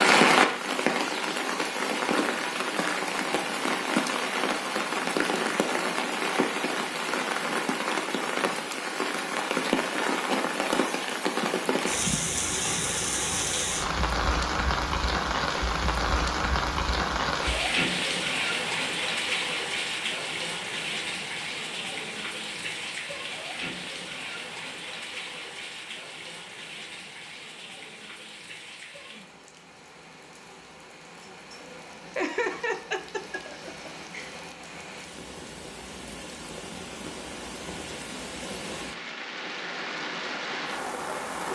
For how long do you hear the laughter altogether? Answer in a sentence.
The laughter can be heard for 2 seconds in total.